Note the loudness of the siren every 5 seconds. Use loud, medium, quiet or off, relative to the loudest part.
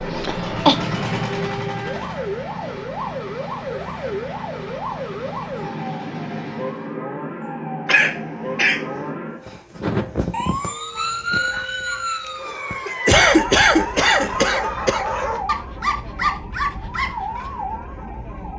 loud, loud, loud, medium.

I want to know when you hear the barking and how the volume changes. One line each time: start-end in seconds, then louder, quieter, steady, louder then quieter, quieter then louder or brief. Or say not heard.
10.9-17.4 louder.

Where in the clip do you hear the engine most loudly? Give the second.
1 s.